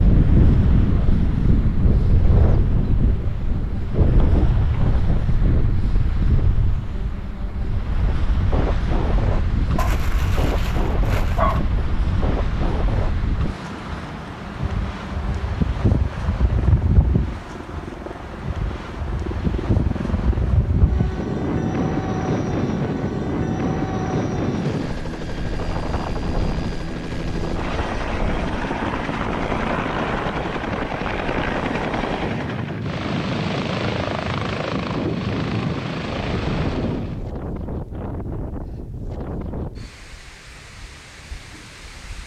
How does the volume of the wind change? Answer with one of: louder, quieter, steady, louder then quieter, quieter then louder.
quieter.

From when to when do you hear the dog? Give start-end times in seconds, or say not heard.
9.8-11.7.